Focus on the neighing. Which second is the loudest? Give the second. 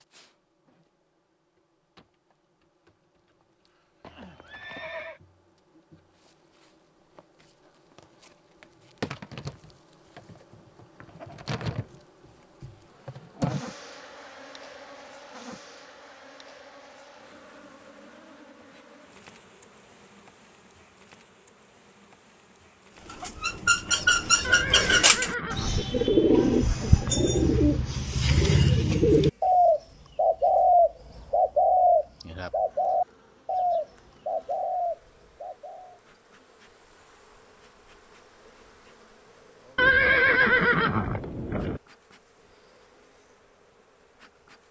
40 s.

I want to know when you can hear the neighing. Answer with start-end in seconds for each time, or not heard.
4.0-5.2, 24.4-25.9, 39.8-41.8.